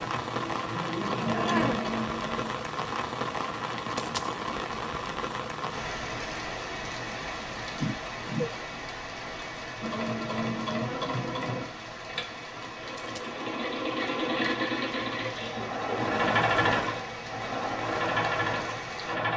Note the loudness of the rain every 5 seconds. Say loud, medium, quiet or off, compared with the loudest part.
loud, loud, medium, medium.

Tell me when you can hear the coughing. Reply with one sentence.
The coughing can be heard from 1.3 to 1.9 s, from 7.7 to 8.8 s and from 15.2 to 16.4 s.